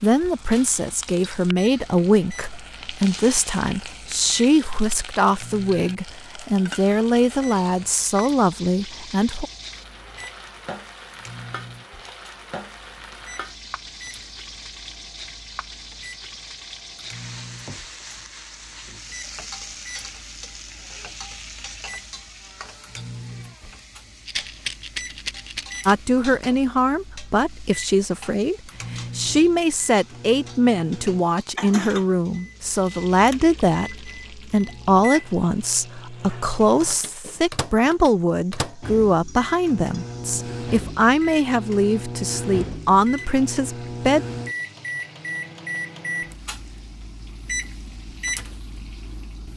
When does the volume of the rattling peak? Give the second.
25 s.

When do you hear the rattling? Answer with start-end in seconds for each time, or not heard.
24.2-25.9.